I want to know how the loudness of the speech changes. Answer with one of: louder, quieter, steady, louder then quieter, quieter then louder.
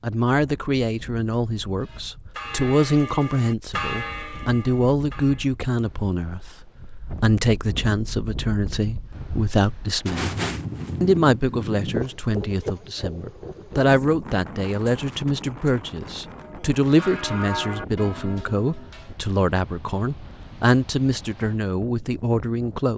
steady.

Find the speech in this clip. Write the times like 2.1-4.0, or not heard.
0.0-10.3, 11.0-22.9.